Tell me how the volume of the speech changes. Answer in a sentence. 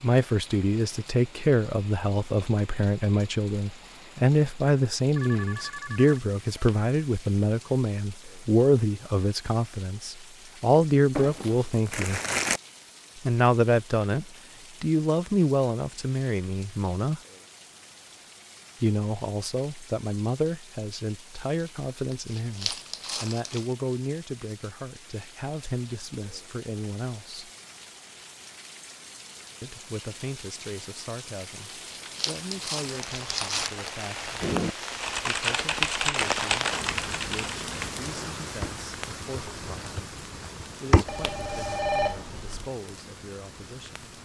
The loudness of the speech goes down.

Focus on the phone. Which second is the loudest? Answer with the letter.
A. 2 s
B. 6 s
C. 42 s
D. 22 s
C.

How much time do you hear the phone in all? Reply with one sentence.
You can hear the phone for 3 seconds altogether.